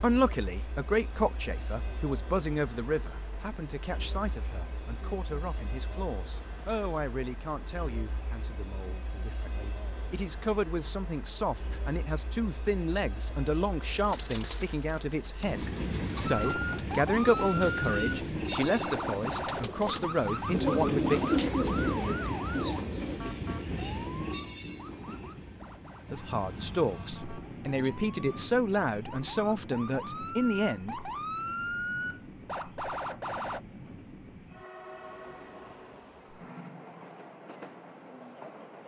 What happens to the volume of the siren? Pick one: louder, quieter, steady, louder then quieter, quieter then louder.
quieter then louder.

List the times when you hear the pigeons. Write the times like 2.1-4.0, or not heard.
14.1-23.2.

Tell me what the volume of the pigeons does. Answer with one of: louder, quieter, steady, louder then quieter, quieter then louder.
louder.